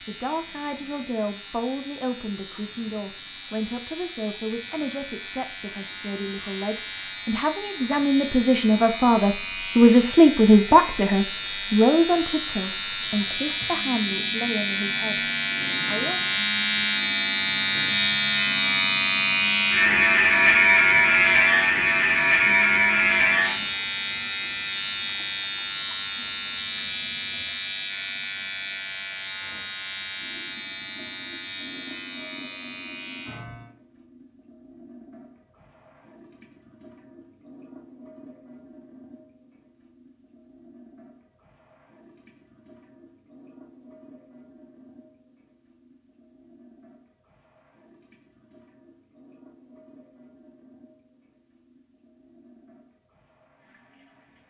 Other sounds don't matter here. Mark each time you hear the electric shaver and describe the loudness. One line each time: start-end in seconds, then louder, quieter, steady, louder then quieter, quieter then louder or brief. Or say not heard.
0.0-33.7 louder then quieter.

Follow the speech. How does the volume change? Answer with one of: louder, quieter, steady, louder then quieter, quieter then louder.
louder then quieter.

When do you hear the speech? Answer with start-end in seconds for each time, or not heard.
0.0-16.2.